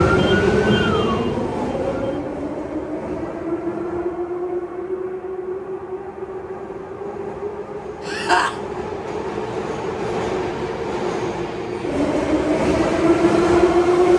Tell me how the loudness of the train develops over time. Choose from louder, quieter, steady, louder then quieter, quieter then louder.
quieter then louder.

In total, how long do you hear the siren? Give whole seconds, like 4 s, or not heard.
2 s.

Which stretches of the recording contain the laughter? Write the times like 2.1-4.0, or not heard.
8.1-8.6.